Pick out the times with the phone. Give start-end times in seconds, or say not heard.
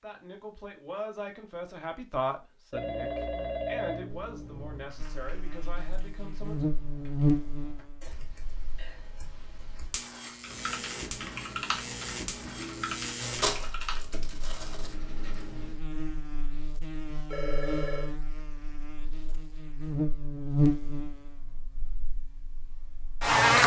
2.7-4.9, 12.6-13.1, 17.2-18.1.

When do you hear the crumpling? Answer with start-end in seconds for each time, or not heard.
13.2-14.9.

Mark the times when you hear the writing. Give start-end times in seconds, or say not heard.
10.4-15.8.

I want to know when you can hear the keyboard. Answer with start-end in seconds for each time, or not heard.
4.0-14.1.